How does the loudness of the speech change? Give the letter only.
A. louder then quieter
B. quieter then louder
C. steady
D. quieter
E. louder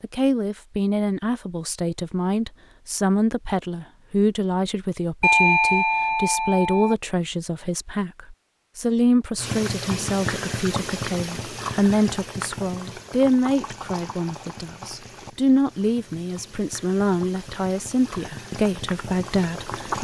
C.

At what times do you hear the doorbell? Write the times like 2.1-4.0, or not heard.
5.2-7.0.